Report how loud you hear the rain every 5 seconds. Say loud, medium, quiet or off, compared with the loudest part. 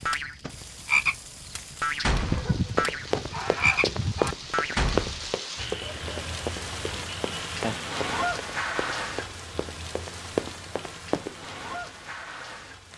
medium, loud, medium.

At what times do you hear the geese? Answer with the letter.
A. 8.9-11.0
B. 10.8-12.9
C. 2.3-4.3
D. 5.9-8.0
C.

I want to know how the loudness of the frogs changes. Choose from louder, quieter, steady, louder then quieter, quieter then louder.
quieter.